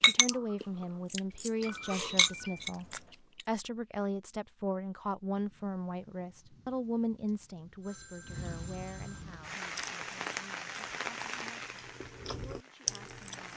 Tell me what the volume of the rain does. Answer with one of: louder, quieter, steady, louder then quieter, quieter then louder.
louder then quieter.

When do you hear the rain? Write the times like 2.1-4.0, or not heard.
5.3-13.5.